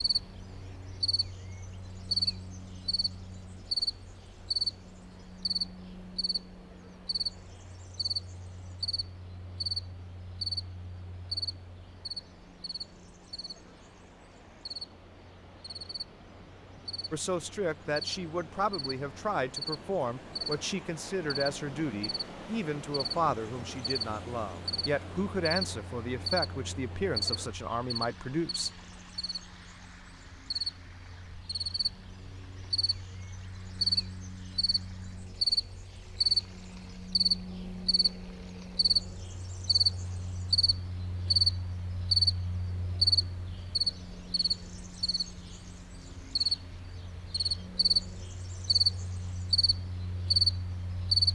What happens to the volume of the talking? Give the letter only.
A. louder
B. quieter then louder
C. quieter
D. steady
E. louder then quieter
D.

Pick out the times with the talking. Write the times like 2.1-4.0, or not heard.
17.1-28.7.